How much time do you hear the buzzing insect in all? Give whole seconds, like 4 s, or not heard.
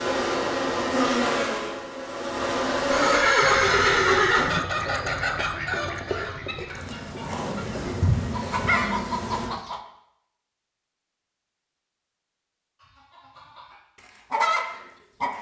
6 s.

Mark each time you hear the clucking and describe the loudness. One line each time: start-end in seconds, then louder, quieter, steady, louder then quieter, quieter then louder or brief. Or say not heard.
3.4-9.8 quieter then louder
12.8-15.3 brief.